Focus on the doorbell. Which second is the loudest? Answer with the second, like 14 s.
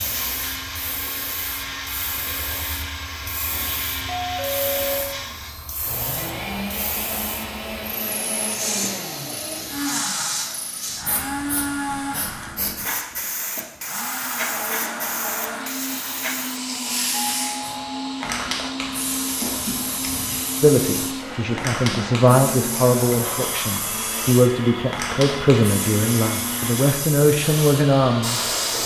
5 s.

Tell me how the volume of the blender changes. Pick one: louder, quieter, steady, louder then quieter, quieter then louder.
steady.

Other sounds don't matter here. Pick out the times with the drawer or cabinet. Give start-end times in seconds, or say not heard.
19.2-20.4.